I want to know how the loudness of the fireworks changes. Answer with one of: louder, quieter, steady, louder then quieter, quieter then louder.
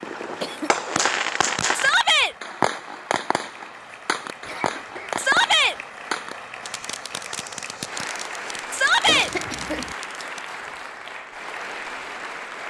quieter.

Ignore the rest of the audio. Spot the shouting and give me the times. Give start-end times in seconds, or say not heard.
1.8-2.4, 5.2-5.8, 8.7-9.3.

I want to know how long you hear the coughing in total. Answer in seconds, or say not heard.
2 s.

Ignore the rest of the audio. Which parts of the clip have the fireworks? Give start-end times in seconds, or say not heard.
0.0-10.4.